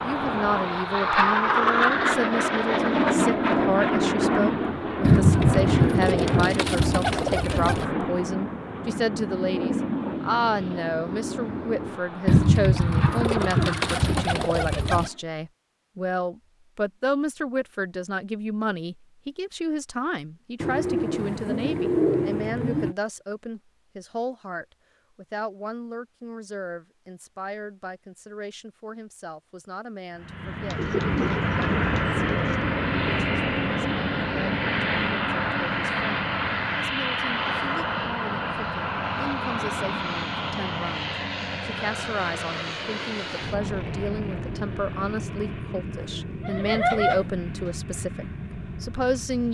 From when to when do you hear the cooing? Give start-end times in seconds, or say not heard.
5.0-7.8, 12.2-15.1, 20.6-22.9, 30.7-32.5, 46.0-47.7.